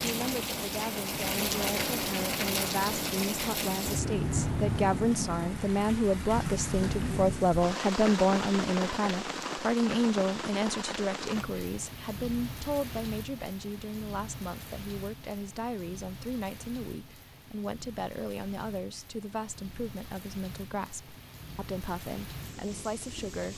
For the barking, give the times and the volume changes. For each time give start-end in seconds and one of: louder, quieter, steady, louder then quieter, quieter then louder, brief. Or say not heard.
not heard.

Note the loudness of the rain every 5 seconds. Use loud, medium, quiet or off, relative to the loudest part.
loud, loud, medium, quiet, quiet.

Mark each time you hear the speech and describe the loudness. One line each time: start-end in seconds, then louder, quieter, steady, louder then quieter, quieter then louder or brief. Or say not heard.
0.0-23.5 louder then quieter.